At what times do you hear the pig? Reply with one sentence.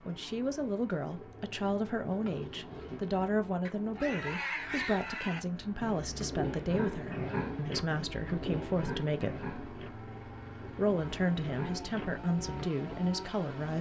You can hear the pig from 2.2 to 12.7 s.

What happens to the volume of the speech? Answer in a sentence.
The loudness of the speech stays about the same.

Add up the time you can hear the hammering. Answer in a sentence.
You can't hear the hammering here.